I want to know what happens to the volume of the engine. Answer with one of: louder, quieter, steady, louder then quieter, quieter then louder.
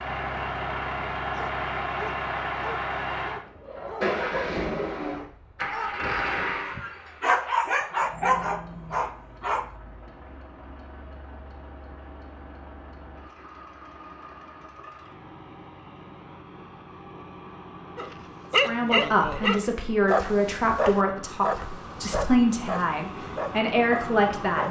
quieter then louder.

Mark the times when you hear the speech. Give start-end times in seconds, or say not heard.
18.6-24.6.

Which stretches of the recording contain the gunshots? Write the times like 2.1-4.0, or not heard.
not heard.